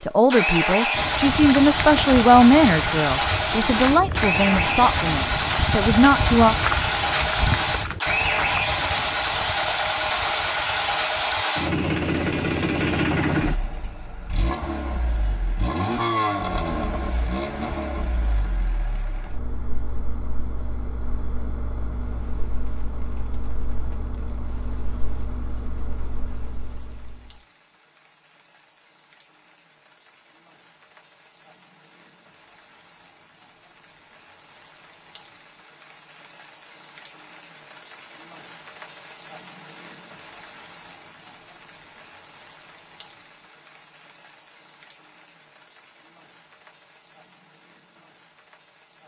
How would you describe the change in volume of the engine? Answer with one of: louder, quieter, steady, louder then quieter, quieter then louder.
quieter.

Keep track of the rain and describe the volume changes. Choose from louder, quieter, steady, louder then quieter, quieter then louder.
louder then quieter.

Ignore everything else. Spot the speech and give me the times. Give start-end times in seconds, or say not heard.
0.0-6.5.